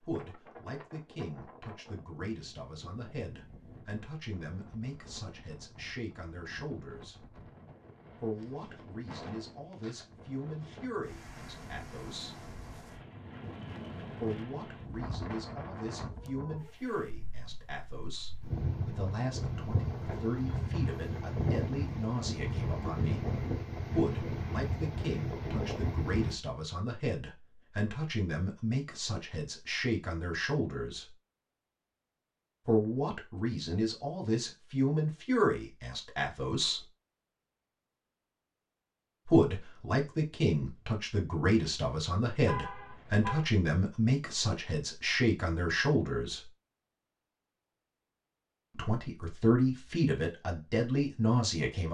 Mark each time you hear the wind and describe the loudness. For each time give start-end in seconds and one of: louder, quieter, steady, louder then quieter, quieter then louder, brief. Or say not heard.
0.0-26.4 louder.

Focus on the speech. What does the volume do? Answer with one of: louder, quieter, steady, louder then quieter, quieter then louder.
louder.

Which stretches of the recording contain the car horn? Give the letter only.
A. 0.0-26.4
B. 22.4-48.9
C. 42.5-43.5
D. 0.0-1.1
C.